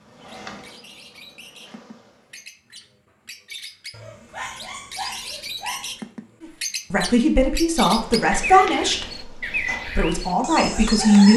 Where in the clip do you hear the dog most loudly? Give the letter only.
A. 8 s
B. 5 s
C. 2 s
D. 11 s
B.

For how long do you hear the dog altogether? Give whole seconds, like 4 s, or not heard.
2 s.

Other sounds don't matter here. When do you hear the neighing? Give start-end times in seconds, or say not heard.
not heard.